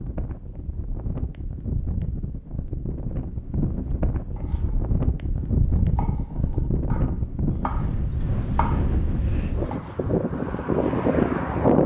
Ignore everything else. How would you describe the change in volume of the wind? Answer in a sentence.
The loudness of the wind goes up.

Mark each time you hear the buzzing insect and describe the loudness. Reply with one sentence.
You can't hear the buzzing insect here.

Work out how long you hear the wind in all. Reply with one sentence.
The wind can be heard for 12 seconds in total.